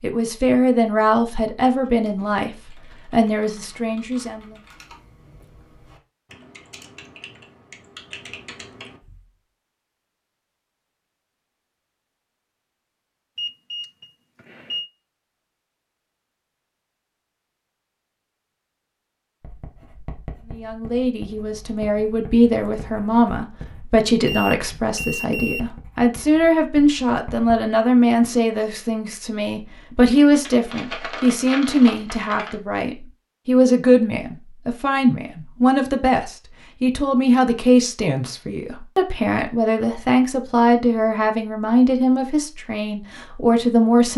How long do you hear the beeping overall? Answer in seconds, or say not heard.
3 s.